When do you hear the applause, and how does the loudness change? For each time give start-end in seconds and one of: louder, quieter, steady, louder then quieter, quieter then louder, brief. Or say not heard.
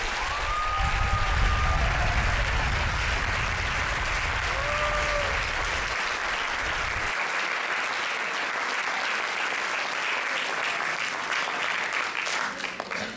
0.0-13.1 steady.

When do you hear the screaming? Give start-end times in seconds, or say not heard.
4.5-5.4.